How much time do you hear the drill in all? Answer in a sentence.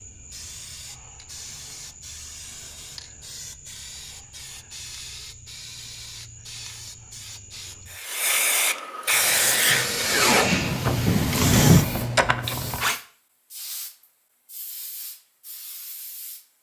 The drill can be heard for 4 seconds in total.